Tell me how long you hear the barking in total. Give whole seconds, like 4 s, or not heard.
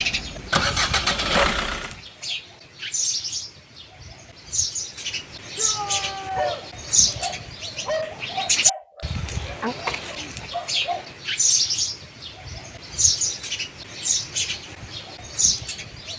5 s.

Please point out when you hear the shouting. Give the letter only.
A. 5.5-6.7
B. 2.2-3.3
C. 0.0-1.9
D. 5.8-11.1
A.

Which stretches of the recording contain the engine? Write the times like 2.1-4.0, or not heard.
0.0-1.9.